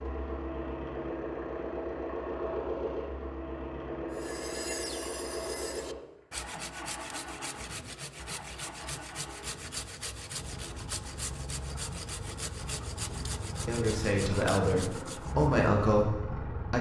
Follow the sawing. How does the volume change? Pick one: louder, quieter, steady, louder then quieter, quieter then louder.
steady.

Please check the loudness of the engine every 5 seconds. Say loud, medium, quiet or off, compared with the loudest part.
loud, medium, medium, loud.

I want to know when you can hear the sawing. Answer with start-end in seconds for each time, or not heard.
4.1-15.5.